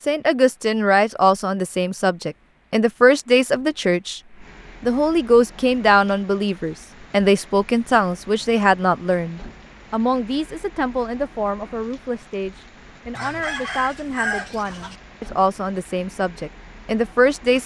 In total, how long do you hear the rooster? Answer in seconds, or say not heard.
2 s.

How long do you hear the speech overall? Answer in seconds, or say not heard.
17 s.